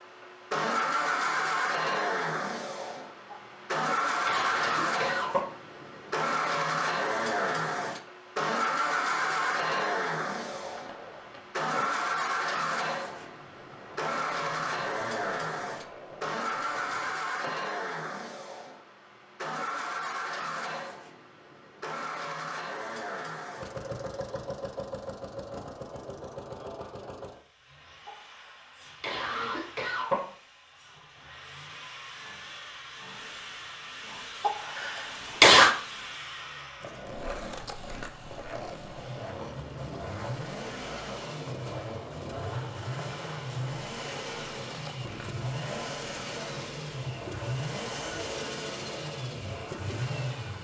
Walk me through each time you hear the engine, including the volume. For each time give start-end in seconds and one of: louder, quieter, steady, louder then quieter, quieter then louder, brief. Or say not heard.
0.0-50.5 quieter then louder.